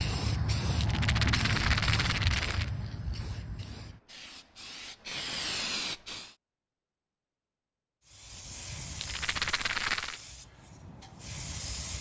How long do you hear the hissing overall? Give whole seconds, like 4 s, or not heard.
10 s.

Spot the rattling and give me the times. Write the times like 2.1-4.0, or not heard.
0.8-2.7, 8.9-10.2.